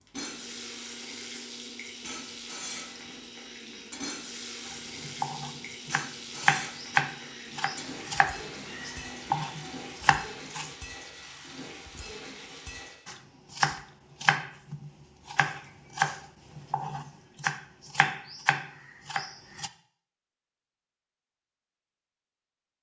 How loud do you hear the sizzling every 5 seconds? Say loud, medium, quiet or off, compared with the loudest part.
loud, loud, loud, off, off.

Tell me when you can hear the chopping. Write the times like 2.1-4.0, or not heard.
4.7-10.7, 13.1-19.7.